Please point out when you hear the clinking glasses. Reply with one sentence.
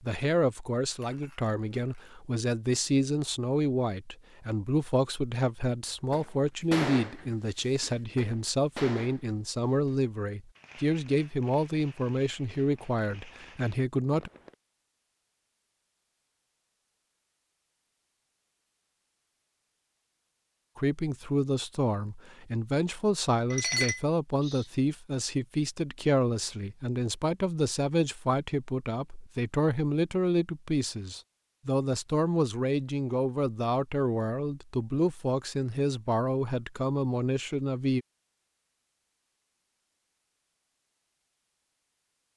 You can hear the clinking glasses from 0.9 to 2.1 s and from 23.5 to 24.6 s.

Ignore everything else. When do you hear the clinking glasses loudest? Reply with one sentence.
The loudest moment of the clinking glasses is at 24 seconds.